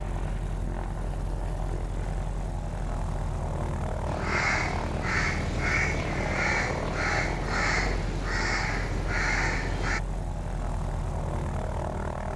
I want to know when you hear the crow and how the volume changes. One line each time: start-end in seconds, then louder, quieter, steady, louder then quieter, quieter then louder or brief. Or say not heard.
4.0-10.0 steady.